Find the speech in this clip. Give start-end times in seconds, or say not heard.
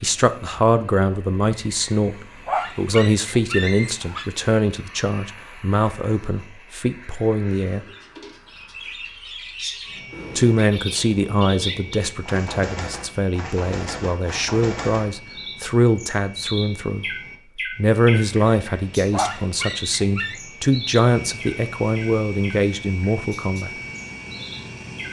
0.0-7.8, 10.3-17.1, 17.8-23.7.